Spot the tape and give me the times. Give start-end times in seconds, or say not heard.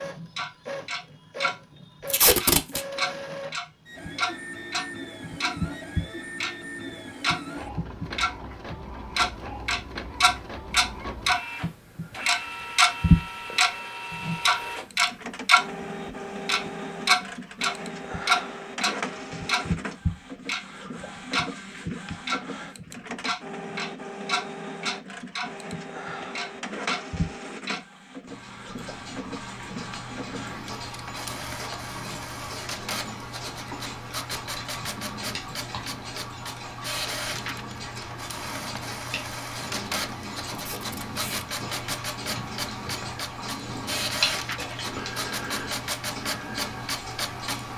2.1-2.8, 40.5-41.5.